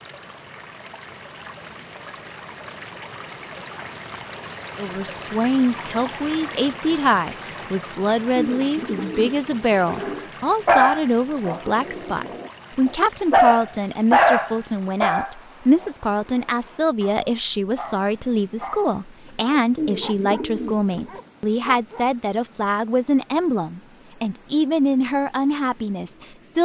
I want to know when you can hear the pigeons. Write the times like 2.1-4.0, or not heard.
8.3-10.3, 19.8-21.2.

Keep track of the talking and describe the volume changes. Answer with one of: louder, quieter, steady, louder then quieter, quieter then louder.
steady.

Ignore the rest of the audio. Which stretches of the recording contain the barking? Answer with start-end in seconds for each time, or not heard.
9.9-22.1.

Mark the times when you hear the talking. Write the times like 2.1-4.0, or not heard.
4.8-26.6.